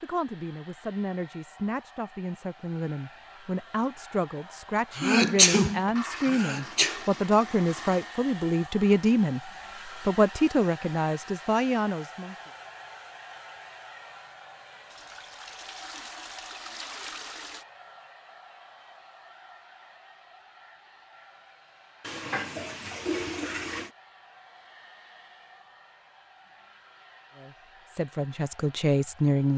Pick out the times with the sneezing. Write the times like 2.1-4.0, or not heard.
4.9-7.0.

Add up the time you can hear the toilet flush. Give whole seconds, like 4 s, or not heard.
7 s.